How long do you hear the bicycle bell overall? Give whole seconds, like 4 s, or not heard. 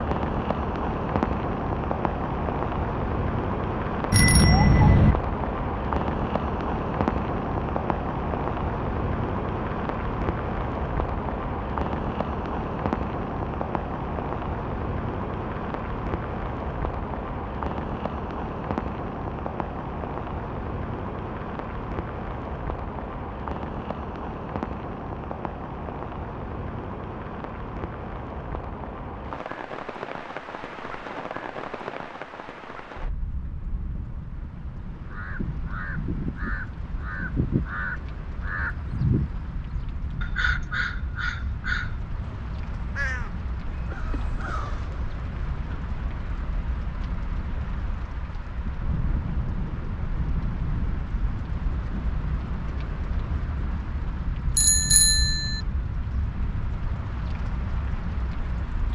2 s.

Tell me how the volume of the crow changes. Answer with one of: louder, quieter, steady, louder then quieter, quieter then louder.
louder then quieter.